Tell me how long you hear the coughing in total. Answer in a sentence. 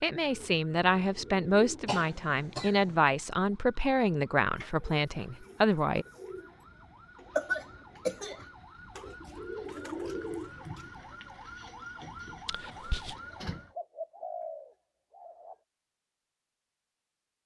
The coughing can be heard for 3 seconds in total.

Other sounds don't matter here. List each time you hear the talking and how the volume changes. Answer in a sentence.
The talking can be heard from 0.0 to 6.0 s, at a steady volume.